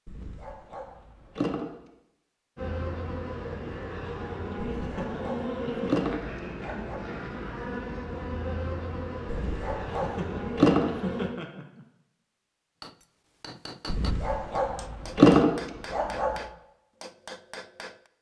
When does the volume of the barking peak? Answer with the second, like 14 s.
15 s.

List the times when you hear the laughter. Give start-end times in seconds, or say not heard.
4.7-5.9, 9.9-11.8.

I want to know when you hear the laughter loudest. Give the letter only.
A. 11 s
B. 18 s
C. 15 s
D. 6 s
A.